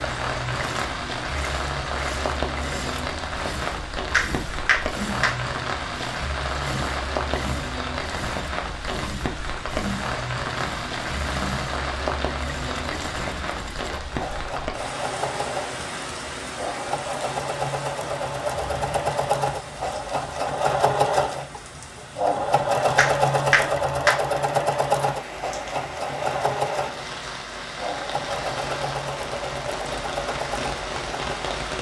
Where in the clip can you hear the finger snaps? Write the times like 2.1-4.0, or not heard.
4.1-5.3, 22.9-24.2.